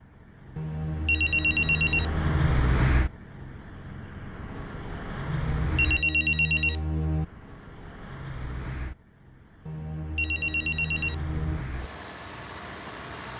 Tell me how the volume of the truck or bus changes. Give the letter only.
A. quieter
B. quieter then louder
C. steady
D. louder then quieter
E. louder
A.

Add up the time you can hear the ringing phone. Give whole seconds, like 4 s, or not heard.
6 s.